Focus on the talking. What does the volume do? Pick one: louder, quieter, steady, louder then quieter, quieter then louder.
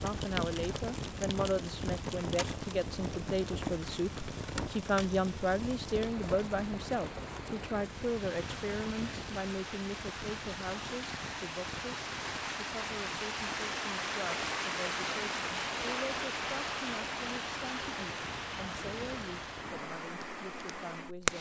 quieter.